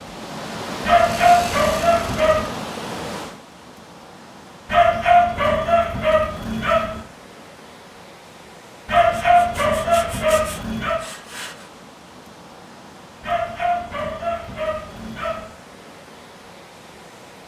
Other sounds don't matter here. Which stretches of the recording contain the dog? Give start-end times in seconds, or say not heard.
0.8-2.5, 4.7-7.0, 8.8-11.0, 13.2-15.5.